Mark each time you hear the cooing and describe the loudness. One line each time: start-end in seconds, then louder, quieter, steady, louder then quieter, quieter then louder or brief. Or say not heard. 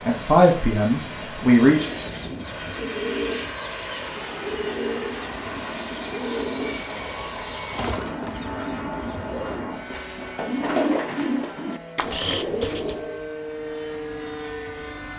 1.7-13.2 louder.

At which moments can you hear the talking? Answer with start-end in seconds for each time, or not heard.
0.1-1.9.